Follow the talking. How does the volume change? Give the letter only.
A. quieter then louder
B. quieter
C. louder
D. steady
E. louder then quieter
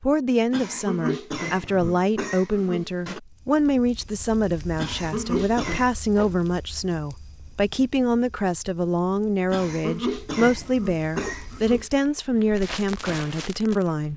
D.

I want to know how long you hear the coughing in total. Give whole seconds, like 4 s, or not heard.
6 s.